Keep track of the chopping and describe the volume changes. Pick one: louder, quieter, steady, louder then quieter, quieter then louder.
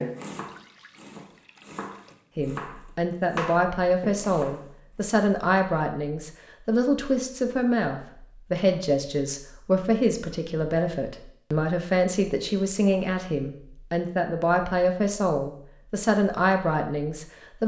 louder then quieter.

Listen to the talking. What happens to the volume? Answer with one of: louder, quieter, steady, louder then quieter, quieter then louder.
steady.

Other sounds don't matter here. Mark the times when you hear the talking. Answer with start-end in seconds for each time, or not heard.
2.4-17.6.